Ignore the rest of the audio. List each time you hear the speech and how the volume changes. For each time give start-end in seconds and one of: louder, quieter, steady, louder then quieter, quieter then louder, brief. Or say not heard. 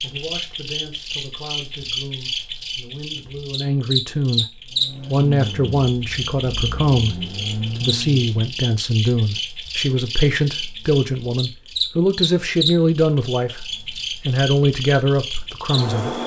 0.0-4.5 louder
5.0-16.2 steady.